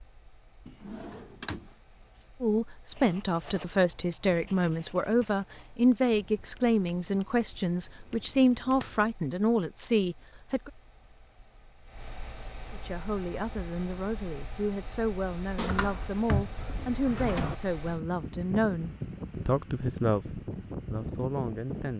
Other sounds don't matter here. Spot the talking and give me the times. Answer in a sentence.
You can hear the talking from 2.4 to 10.7 s and from 12.7 to 21.9 s.